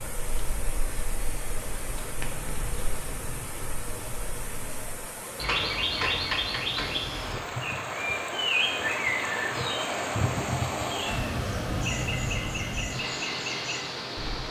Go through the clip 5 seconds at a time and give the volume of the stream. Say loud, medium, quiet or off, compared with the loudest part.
medium, loud, loud.